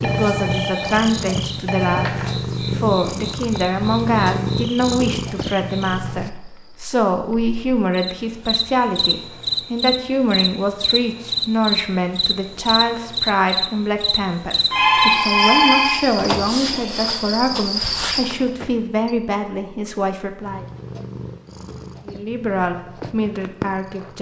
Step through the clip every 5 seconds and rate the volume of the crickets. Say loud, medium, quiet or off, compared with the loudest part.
medium, medium, loud, loud, off.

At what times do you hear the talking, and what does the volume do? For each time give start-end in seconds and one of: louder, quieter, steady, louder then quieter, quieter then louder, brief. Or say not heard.
0.0-20.6 steady
22.1-24.1 brief.